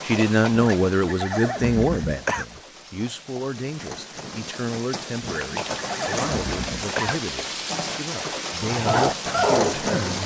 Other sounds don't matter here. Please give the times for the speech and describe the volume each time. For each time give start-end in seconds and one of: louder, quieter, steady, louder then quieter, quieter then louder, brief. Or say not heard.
0.0-10.2 quieter.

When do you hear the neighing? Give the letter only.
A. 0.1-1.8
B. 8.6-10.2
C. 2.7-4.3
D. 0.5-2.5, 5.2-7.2
D.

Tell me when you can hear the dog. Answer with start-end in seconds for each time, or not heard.
8.6-10.2.